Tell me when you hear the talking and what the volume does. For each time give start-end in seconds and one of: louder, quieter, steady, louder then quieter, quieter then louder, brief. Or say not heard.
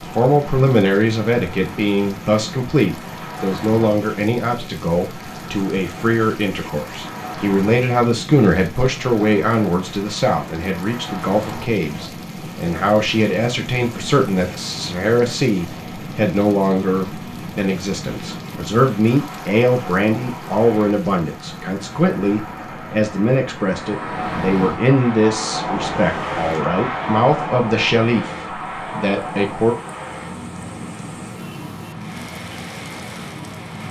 0.0-29.8 steady.